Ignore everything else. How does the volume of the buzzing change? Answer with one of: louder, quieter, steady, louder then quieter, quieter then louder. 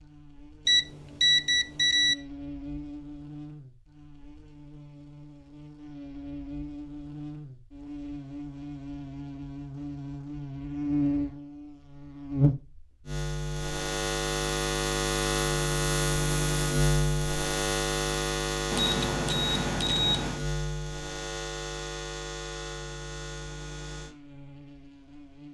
louder then quieter.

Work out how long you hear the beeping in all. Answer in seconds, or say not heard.
3 s.